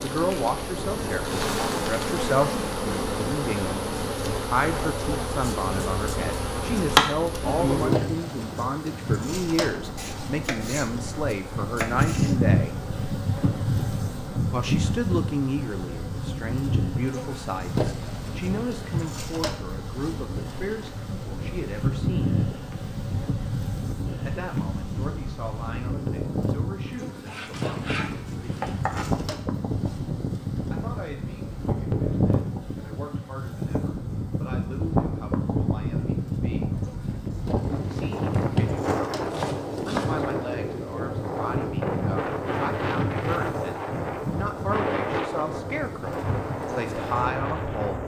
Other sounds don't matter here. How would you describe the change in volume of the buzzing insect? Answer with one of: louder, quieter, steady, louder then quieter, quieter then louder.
quieter.